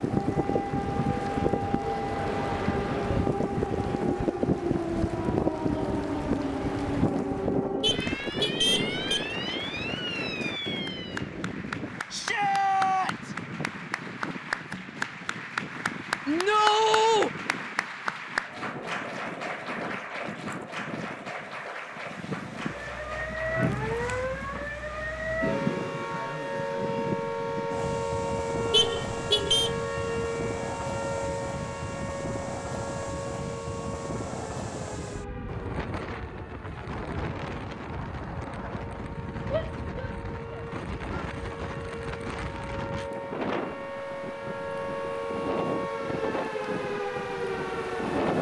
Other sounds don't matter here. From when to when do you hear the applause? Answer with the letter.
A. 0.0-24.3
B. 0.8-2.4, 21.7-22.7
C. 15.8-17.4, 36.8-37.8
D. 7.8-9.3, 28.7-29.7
A.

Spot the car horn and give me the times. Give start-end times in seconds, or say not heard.
7.8-9.3, 28.7-29.7.